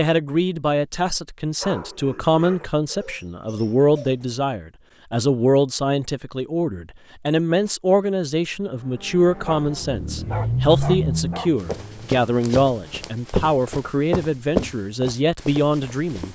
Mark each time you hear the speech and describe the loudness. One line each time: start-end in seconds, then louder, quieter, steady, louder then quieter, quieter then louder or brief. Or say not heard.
0.0-16.2 steady.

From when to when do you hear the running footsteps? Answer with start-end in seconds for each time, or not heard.
11.6-16.2.